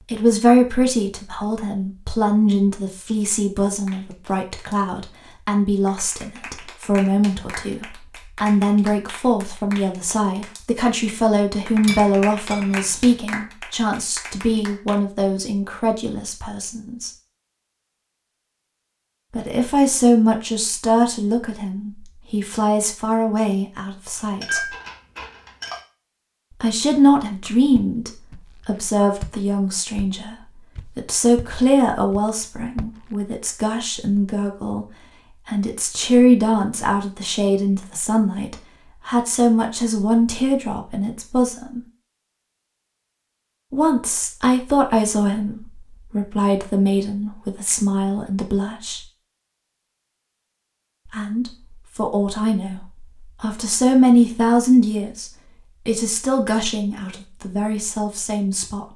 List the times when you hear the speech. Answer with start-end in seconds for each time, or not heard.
0.1-17.1, 19.3-24.8, 26.5-41.8, 43.7-49.0, 51.0-58.9.